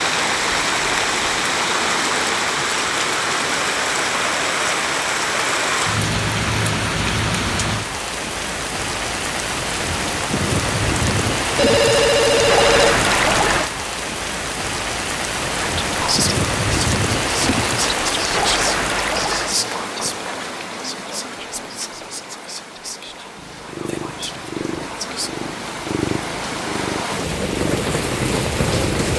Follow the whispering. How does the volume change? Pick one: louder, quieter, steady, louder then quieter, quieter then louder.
quieter.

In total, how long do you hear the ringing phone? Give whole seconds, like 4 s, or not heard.
2 s.